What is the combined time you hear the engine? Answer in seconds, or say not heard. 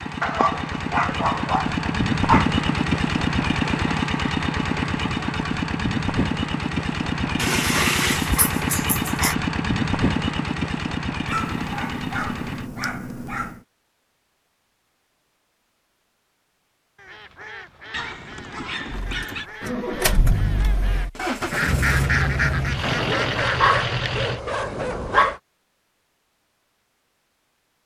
18 s.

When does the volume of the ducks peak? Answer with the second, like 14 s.
22 s.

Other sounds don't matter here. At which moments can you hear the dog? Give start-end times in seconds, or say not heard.
0.2-2.5, 7.3-9.3, 11.2-13.6, 17.9-19.5, 22.8-25.4.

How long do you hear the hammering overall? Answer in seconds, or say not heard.
not heard.